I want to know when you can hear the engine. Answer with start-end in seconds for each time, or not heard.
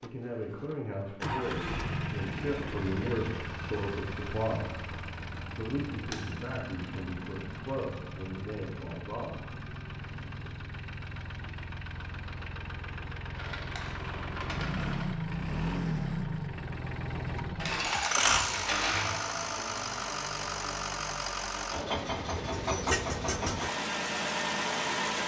0.0-25.2.